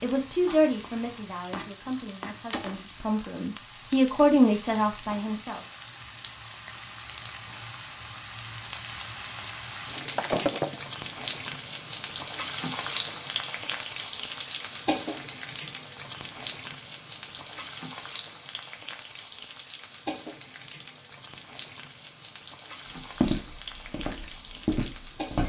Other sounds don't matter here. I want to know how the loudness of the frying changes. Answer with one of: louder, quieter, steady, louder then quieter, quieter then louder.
louder then quieter.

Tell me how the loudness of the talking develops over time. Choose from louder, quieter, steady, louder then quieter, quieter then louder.
quieter then louder.